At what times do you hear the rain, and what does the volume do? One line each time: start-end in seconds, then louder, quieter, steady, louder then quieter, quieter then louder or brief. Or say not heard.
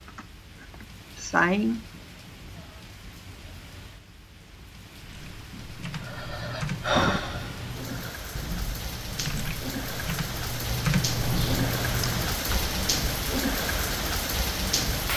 0.0-15.1 louder.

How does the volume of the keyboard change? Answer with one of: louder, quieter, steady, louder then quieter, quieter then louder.
louder.